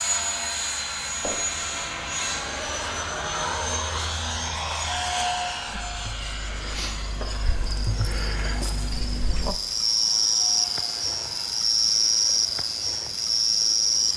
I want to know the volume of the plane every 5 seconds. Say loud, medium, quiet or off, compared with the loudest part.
loud, medium, quiet.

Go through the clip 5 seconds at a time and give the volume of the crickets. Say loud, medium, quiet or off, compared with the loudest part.
off, medium, loud.